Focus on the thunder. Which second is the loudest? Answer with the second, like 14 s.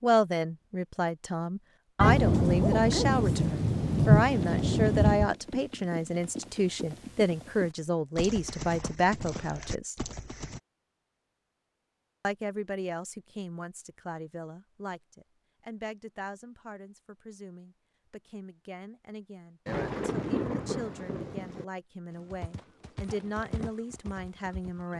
4 s.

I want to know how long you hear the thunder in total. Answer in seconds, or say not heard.
5 s.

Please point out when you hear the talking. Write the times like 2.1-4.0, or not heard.
0.0-9.9, 12.2-24.9.